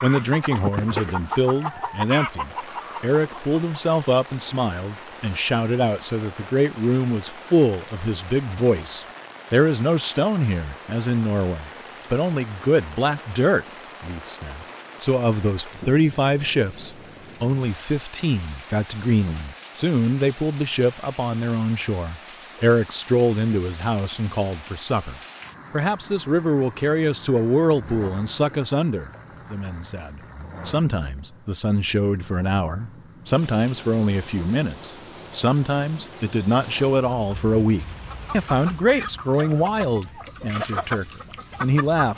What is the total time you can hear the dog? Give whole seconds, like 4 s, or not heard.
not heard.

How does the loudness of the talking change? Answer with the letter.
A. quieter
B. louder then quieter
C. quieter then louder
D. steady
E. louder
D.